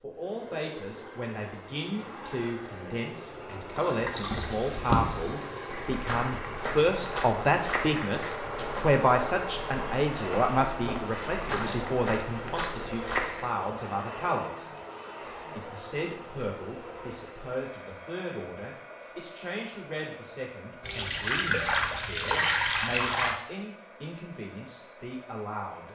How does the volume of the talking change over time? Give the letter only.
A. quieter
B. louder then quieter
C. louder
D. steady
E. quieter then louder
B.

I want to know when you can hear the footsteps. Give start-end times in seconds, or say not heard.
4.2-13.5.